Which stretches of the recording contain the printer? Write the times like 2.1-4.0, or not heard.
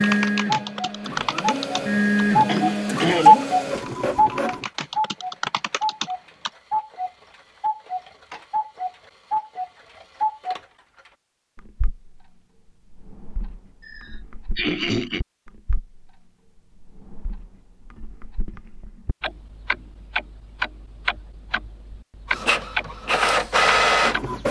0.0-4.7, 22.2-24.4.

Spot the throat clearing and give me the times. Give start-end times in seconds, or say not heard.
2.5-3.5, 13.8-15.2.